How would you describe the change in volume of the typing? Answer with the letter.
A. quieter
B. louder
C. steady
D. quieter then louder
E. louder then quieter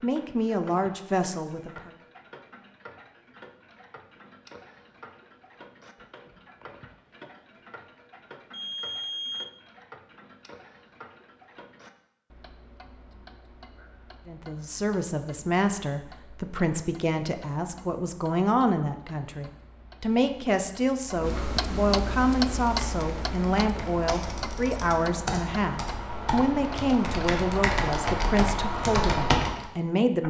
B.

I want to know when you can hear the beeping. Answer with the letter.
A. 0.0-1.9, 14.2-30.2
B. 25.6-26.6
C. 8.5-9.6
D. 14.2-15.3
C.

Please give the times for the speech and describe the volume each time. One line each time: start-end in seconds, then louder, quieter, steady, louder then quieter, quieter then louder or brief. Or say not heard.
0.0-1.9 brief
14.2-30.2 steady.